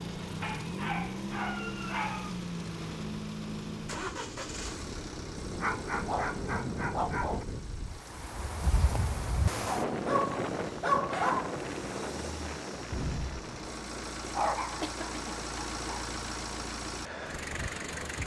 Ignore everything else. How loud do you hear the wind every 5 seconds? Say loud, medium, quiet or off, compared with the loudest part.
medium, loud, loud, medium.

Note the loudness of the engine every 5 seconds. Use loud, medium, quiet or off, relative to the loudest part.
loud, medium, medium, loud.